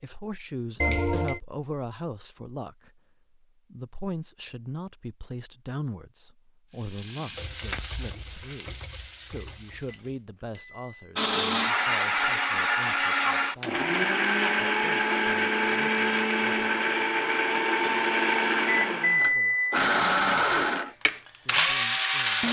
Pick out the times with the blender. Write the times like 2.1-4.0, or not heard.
11.2-22.4.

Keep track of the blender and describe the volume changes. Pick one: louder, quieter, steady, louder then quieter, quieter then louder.
steady.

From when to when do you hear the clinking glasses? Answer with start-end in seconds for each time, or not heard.
not heard.